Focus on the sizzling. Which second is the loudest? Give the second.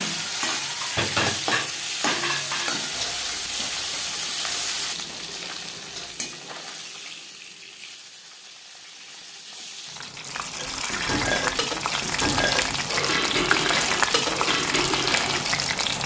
14 s.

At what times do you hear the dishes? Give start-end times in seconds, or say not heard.
0.0-6.3, 10.6-16.0.